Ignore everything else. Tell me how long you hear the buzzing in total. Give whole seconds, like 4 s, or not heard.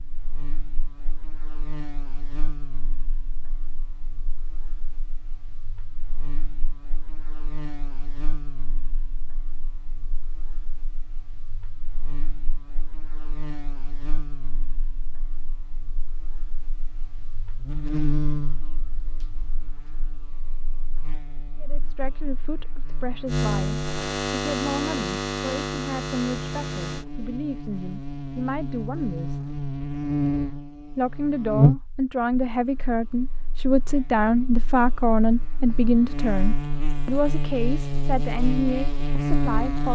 40 s.